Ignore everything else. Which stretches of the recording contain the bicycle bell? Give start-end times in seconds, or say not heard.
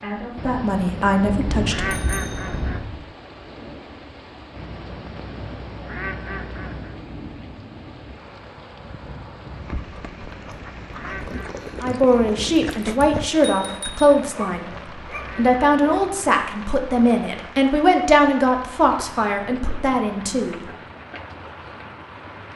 1.2-3.0, 13.0-14.1.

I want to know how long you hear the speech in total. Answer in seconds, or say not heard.
11 s.